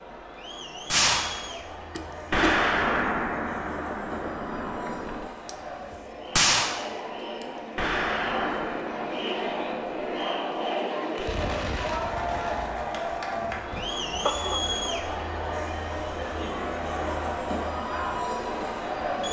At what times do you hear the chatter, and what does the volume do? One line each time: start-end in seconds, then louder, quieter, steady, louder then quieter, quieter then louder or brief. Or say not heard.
0.0-19.2 louder.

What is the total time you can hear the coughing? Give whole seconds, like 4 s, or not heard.
2 s.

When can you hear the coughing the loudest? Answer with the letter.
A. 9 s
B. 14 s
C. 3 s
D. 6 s
B.